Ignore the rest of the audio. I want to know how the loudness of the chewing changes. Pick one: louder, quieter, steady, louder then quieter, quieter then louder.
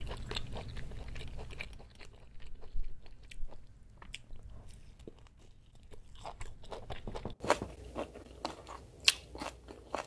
quieter then louder.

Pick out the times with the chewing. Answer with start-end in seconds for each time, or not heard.
0.0-10.0.